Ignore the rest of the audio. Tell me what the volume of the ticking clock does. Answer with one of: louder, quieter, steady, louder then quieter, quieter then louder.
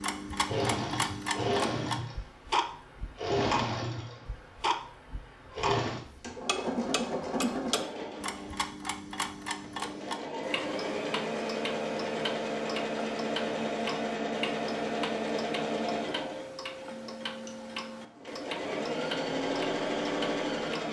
quieter.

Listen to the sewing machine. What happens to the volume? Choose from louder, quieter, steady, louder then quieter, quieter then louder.
steady.